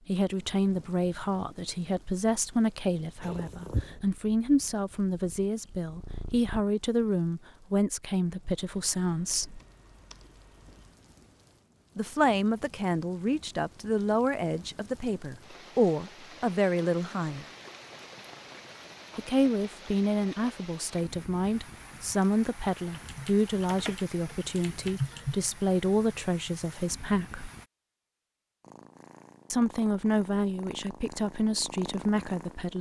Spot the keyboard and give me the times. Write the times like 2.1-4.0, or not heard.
8.6-11.0, 22.9-25.4.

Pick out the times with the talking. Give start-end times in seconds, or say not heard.
0.1-9.6, 11.9-17.4, 19.1-27.5, 29.5-32.7.